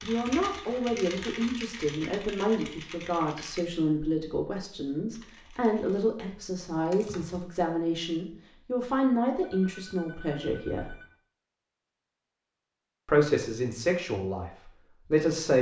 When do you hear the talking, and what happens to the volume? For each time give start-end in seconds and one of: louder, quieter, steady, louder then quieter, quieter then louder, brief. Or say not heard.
0.0-10.9 steady
13.1-15.5 brief.